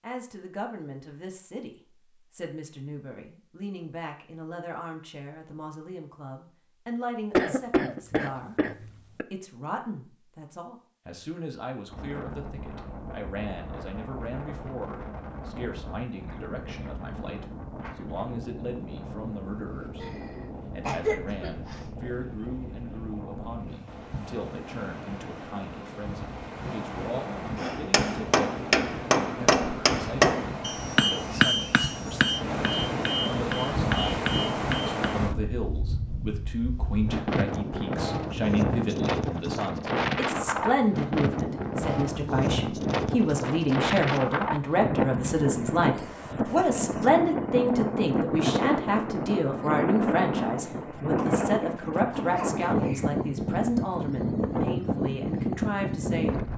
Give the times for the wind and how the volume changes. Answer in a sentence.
You can hear the wind from 11.8 to 56.5 s, getting louder.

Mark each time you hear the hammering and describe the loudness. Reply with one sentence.
You can hear the hammering from 27.6 to 35.0 s, getting quieter.